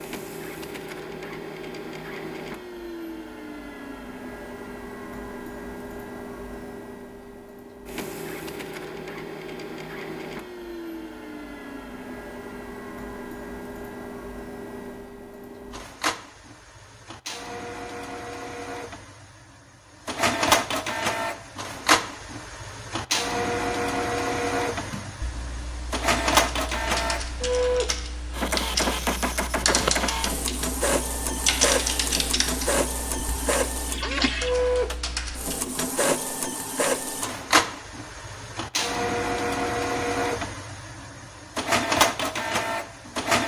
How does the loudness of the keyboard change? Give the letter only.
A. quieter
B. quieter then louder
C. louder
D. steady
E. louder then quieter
E.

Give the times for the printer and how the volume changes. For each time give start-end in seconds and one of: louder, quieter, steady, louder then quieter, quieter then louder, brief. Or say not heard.
0.0-43.4 louder.